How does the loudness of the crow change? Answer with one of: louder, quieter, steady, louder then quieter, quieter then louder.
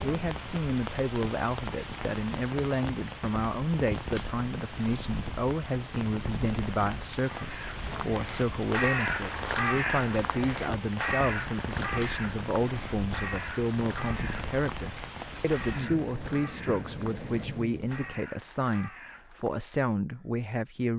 quieter.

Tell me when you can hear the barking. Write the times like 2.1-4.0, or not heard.
not heard.